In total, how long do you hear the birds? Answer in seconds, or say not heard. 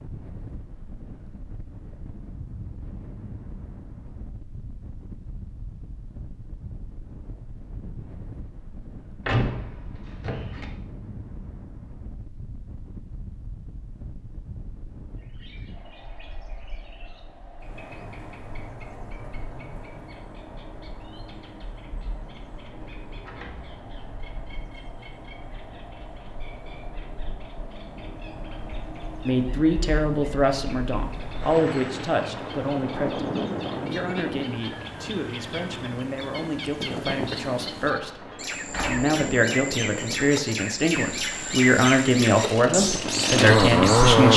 29 s.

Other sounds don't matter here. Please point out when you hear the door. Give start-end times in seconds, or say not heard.
9.2-10.7, 23.1-23.8, 37.9-39.1.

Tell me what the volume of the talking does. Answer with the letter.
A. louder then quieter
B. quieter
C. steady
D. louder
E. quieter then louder
E.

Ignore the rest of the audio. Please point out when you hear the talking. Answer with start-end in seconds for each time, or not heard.
29.2-44.3.